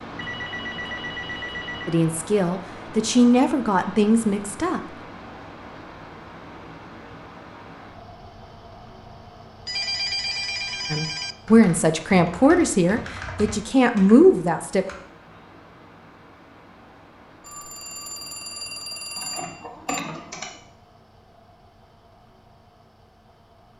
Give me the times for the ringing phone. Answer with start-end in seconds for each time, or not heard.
0.1-2.0, 9.7-11.3, 17.4-20.0.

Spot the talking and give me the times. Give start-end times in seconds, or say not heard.
1.9-4.8, 10.9-14.8.